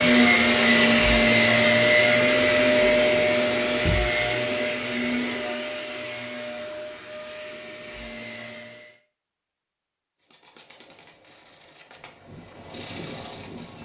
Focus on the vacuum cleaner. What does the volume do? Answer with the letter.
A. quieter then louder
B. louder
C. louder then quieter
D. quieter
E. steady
D.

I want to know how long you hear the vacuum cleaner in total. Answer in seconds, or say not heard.
9 s.